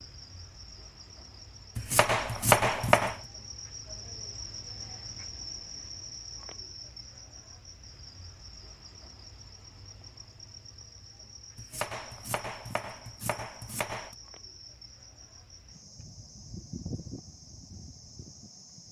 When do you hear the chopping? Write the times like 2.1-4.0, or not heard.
1.8-3.2, 11.6-14.2.